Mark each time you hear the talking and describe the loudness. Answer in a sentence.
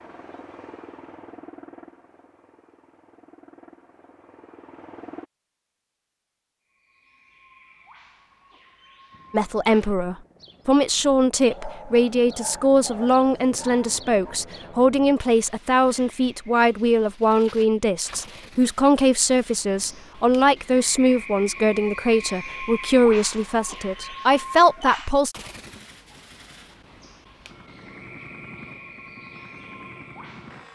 You can hear the talking from 9.3 to 25.4 s, at a steady volume.